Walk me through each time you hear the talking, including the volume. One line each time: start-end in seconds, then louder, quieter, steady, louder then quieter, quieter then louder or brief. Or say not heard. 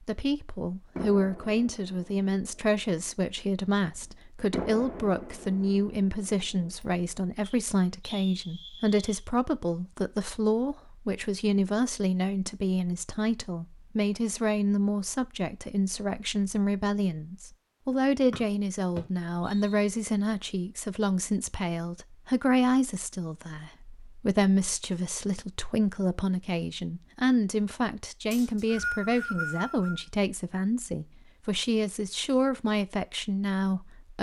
0.0-34.1 steady.